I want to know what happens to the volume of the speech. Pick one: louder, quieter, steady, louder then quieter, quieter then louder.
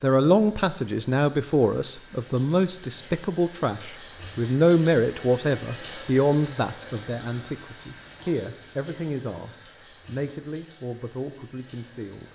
quieter.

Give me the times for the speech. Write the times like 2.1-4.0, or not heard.
0.0-12.2.